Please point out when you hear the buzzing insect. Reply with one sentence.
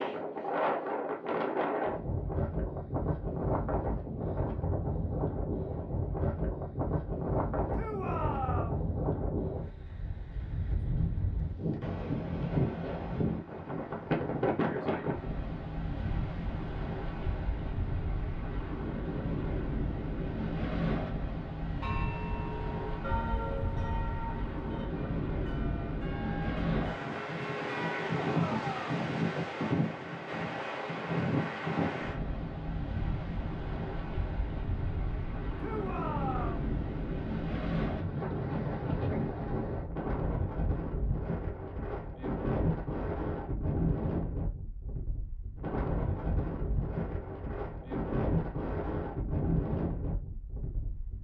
You can't hear the buzzing insect here.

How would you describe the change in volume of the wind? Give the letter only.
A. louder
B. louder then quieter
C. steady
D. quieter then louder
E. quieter
C.